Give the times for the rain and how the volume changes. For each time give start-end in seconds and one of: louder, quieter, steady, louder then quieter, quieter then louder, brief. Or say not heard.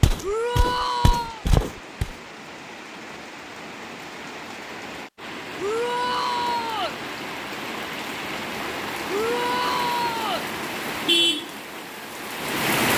0.1-12.9 louder.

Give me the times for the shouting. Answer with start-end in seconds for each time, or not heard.
0.2-1.4, 5.5-7.0, 9.1-10.4.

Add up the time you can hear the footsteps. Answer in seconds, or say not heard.
2 s.